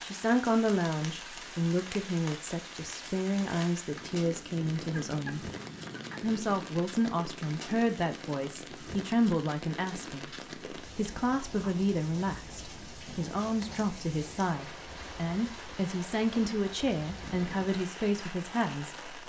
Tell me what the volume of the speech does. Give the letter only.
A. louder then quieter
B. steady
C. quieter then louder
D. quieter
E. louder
B.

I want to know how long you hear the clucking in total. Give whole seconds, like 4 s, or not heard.
2 s.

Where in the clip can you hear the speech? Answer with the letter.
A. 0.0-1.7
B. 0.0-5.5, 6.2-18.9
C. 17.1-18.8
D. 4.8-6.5
B.